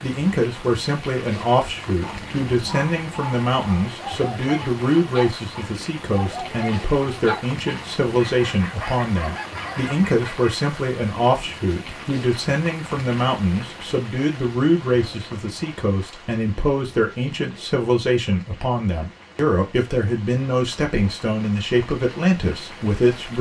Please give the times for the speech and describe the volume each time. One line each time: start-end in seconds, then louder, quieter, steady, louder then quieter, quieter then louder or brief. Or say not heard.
0.0-23.3 steady.